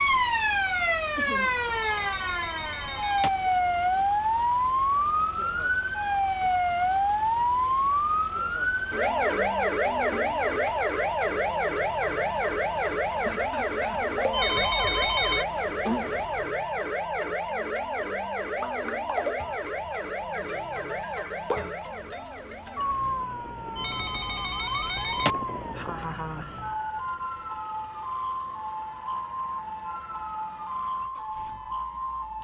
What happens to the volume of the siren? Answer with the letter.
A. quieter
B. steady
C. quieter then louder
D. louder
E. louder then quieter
A.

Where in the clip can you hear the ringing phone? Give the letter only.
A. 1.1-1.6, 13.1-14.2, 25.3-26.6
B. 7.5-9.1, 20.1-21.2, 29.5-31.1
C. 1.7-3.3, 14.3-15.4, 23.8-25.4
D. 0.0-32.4
C.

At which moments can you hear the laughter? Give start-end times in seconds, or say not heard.
1.1-1.6, 13.1-14.2, 25.3-26.6.